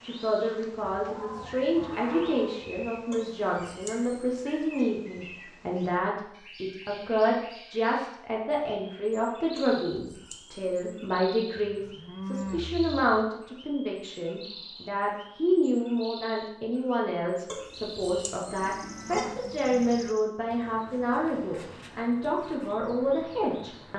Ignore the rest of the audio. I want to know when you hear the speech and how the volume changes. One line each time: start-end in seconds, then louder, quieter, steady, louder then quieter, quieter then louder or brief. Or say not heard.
0.0-23.9 steady.